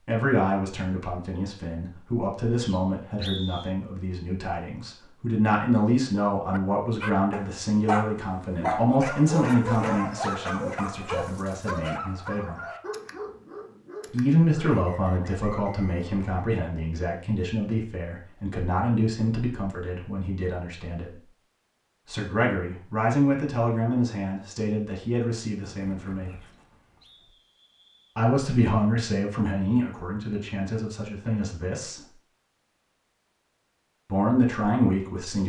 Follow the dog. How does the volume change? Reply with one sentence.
The loudness of the dog goes down.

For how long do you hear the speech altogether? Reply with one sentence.
The speech can be heard for 29 seconds in total.